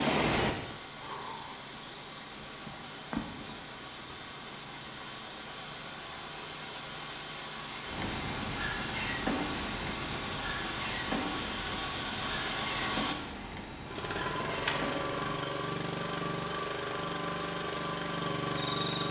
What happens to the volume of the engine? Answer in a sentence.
The loudness of the engine goes up.